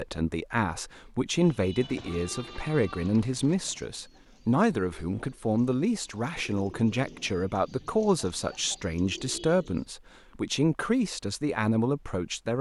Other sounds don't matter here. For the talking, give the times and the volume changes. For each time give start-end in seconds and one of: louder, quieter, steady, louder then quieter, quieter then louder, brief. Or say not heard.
0.0-12.5 steady.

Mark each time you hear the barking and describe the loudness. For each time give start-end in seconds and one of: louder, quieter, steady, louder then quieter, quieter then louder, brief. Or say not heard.
not heard.